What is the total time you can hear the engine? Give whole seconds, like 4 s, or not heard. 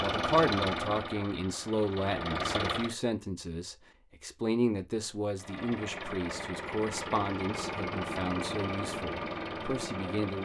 8 s.